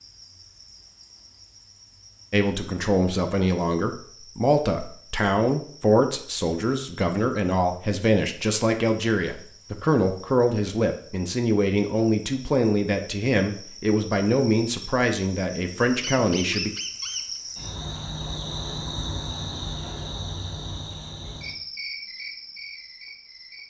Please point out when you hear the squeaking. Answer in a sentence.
You can hear the squeaking from 16.0 to 17.4 s.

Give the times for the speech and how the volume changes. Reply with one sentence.
The speech can be heard from 2.3 to 16.7 s, at a steady volume.